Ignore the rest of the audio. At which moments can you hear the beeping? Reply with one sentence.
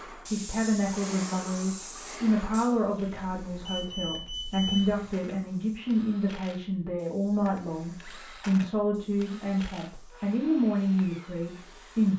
You can hear the beeping from 3.1 to 4.9 s.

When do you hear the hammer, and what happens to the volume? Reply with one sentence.
You can't hear the hammer here.